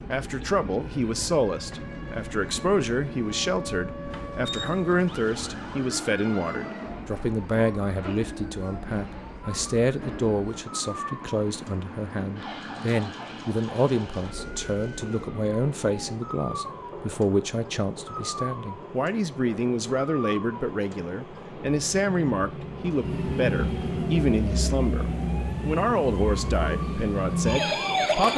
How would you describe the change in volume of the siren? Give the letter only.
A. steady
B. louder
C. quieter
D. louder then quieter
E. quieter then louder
B.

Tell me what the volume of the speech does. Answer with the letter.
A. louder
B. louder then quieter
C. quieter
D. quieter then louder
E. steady
E.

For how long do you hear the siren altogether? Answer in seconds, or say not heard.
28 s.